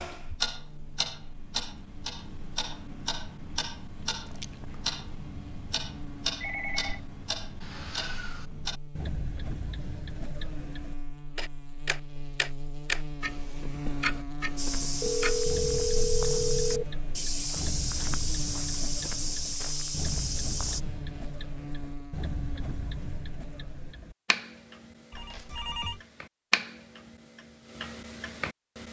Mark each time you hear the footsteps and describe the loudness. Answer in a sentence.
You can hear the footsteps from 14.6 to 20.8 s, at a steady volume.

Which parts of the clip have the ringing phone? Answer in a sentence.
You can hear the ringing phone from 6.4 to 7.0 s, from 15.0 to 16.9 s and from 25.1 to 26.0 s.